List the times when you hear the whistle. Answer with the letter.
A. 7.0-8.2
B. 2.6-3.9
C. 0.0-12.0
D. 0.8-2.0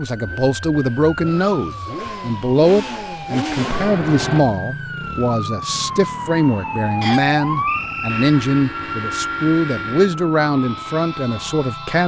A.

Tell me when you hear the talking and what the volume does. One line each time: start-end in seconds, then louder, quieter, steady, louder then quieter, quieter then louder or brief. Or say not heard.
0.0-12.0 steady.